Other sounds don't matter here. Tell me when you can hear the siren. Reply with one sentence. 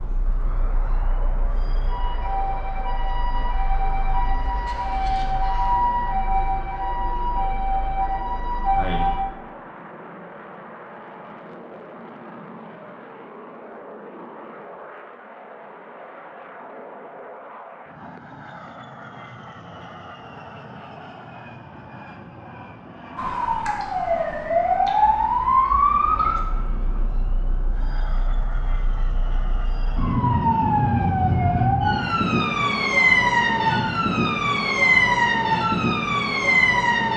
You can hear the siren from 0.0 to 9.2 s and from 23.1 to 37.1 s.